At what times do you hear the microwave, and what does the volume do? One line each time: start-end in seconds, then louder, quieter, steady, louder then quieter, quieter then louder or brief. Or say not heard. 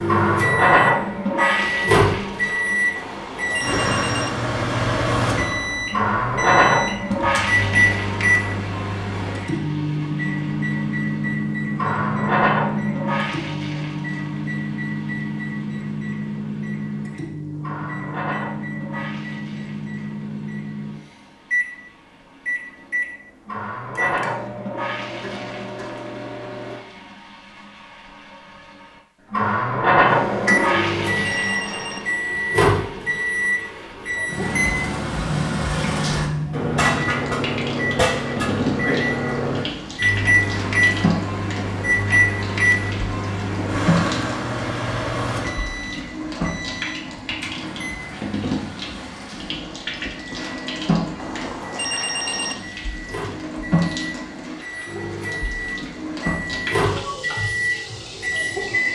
0.0-26.9 quieter
30.0-58.9 quieter then louder.